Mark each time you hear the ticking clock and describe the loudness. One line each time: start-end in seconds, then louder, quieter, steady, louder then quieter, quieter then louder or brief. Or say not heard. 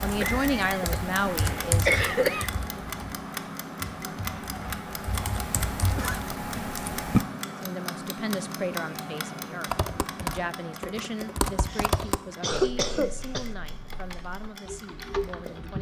0.0-15.7 quieter.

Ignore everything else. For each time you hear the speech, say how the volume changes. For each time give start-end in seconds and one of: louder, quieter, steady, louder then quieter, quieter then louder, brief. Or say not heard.
0.0-1.9 brief
7.6-15.7 quieter.